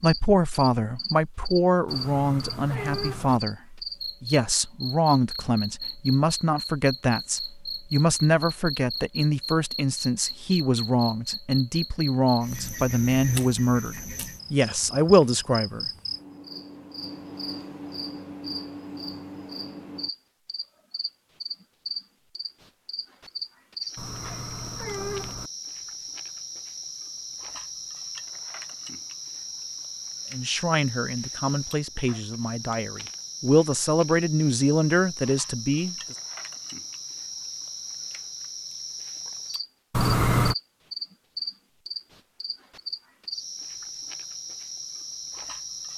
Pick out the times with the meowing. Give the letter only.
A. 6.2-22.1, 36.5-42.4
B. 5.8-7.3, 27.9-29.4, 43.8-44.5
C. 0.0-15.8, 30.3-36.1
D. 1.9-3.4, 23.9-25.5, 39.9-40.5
D.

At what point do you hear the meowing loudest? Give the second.
40 s.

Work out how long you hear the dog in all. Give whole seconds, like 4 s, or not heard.
not heard.